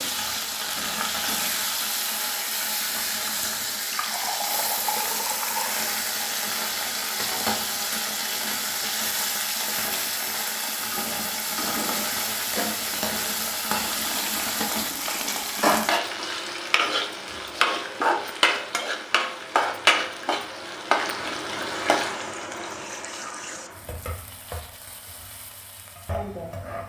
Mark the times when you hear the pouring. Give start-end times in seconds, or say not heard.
3.8-5.7, 13.8-15.8, 21.6-23.7.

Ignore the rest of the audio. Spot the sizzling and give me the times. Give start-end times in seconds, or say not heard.
0.0-26.8.